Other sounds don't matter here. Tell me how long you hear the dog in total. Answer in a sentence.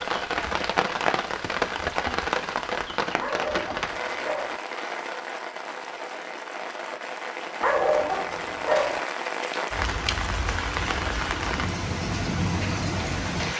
The dog can be heard for 3 seconds in total.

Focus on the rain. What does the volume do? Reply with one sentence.
The volume of the rain goes down, then up.